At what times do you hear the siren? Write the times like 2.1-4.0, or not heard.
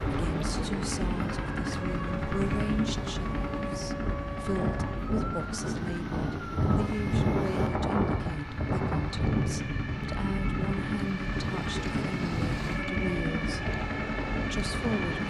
0.0-15.2.